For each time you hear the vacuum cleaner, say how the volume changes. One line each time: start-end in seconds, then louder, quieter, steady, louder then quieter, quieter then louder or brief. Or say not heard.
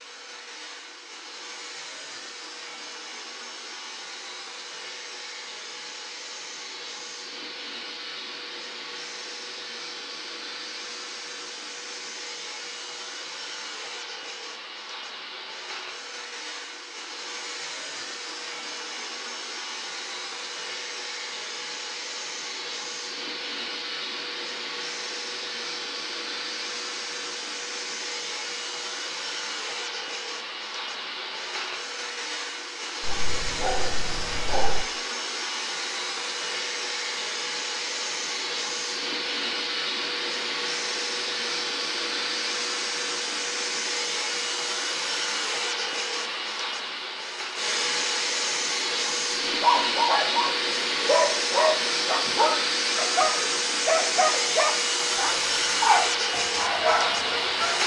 0.0-57.8 louder.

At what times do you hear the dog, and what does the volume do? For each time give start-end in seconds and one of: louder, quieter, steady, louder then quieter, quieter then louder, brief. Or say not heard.
33.0-34.9 brief
49.6-57.8 steady.